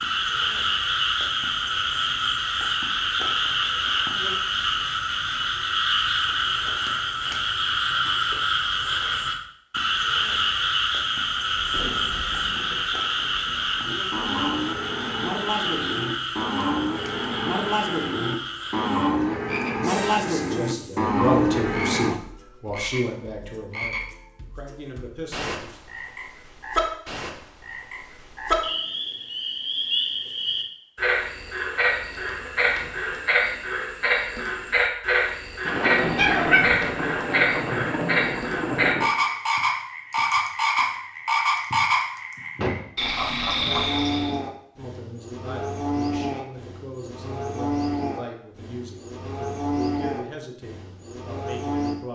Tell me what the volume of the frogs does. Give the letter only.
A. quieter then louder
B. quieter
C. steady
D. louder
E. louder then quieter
A.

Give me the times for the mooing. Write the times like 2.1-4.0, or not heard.
13.8-22.1, 43.6-52.0.